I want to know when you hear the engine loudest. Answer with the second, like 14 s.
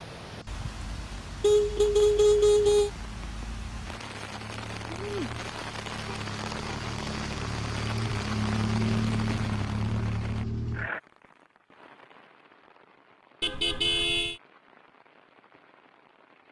9 s.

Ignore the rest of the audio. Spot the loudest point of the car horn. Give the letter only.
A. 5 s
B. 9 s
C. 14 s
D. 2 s
D.